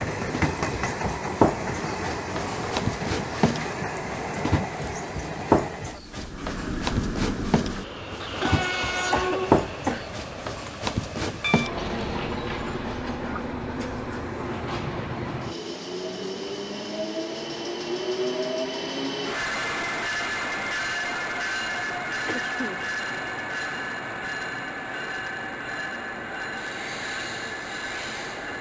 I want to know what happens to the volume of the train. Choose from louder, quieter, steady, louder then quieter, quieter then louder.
steady.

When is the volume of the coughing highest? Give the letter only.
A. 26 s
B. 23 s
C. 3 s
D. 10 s
D.